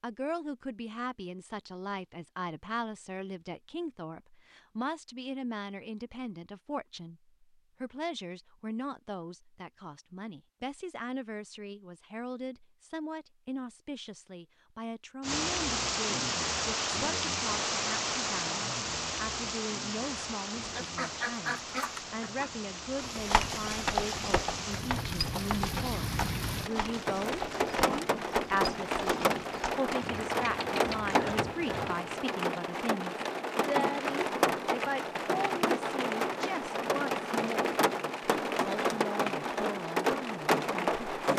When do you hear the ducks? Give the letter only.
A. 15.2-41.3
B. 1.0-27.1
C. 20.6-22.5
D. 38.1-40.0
C.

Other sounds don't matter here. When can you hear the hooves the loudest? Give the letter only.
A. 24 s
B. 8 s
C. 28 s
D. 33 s
A.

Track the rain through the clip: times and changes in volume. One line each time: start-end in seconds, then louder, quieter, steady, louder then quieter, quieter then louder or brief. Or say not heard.
15.2-41.3 quieter then louder.